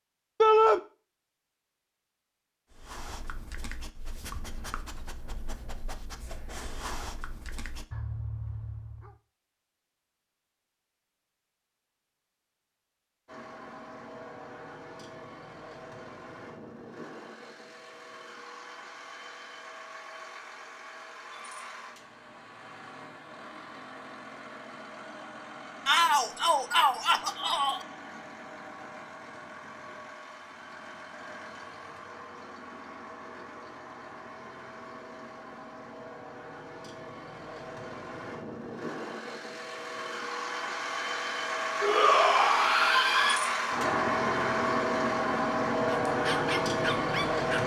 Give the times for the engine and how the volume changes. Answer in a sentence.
The engine can be heard from 13.2 to 47.6 s, getting louder.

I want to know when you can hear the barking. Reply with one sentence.
You can hear the barking from 2.7 to 9.2 s and from 45.9 to 47.6 s.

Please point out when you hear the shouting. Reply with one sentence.
The shouting can be heard from 0.4 to 0.8 s, from 25.9 to 27.9 s and from 41.8 to 43.4 s.